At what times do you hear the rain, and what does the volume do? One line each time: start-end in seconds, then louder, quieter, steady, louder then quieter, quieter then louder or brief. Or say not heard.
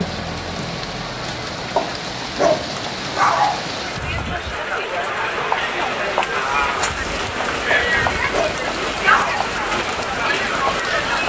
0.0-11.2 quieter then louder.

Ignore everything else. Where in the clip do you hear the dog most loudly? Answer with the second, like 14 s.
3 s.